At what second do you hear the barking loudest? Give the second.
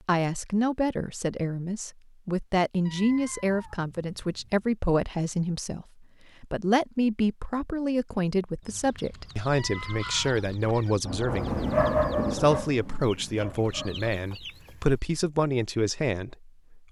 12 s.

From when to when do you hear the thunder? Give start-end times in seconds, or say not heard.
11.1-12.6.